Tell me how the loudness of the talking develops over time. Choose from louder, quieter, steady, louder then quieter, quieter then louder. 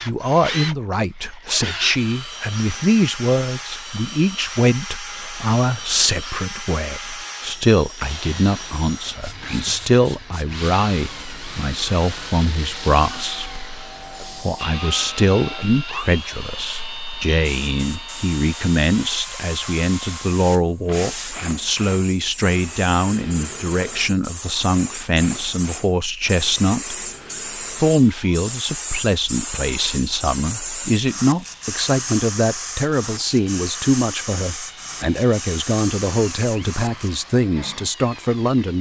steady.